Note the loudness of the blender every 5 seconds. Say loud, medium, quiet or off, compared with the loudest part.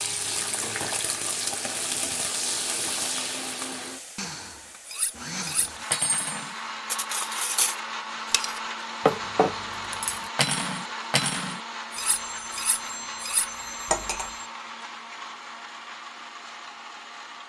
medium, loud, loud, medium.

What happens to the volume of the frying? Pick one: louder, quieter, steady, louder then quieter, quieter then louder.
quieter.